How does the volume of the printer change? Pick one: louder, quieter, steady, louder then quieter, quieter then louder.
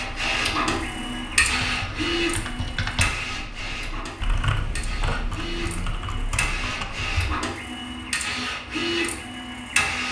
quieter then louder.